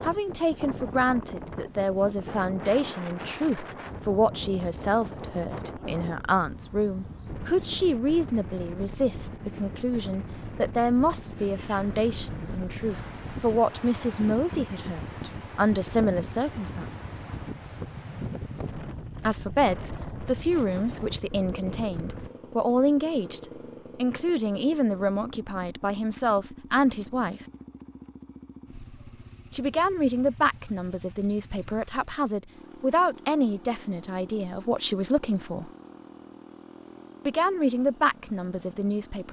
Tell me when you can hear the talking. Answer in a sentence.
You can hear the talking from 0.0 to 16.9 s, from 19.2 to 27.4 s, from 29.5 to 35.7 s and from 37.2 to 39.2 s.